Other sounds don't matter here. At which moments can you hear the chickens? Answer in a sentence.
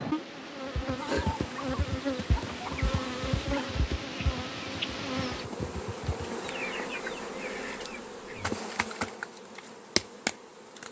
The chickens can be heard from 0.9 to 3.6 s and from 6.4 to 8.6 s.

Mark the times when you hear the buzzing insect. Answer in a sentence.
You can hear the buzzing insect from 0.0 to 10.8 s.